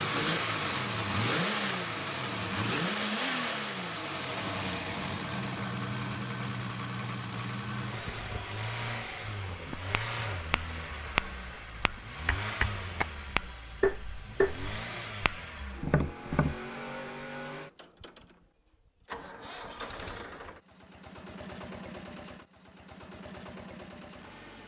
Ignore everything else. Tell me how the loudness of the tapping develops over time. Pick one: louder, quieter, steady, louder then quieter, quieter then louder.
quieter then louder.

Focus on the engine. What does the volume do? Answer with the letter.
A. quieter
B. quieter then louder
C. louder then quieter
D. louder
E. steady
A.